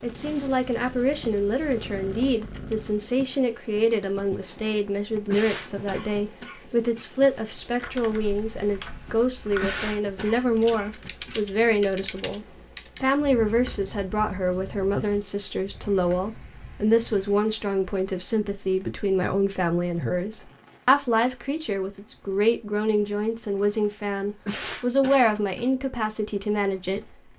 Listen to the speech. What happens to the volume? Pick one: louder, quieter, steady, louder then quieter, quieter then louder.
steady.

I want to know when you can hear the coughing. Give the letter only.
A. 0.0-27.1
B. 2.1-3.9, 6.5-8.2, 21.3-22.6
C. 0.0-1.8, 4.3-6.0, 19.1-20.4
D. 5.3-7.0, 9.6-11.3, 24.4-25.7
D.